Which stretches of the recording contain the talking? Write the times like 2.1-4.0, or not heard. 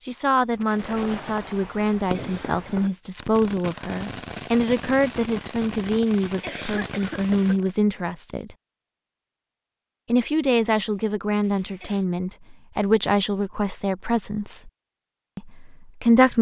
0.1-8.6, 10.1-14.7, 15.3-16.3.